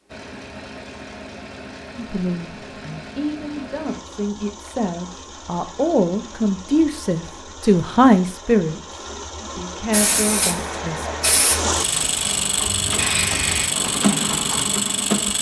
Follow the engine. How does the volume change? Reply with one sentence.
The loudness of the engine goes up.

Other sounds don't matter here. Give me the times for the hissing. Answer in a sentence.
The hissing can be heard from 9.9 to 13.7 s.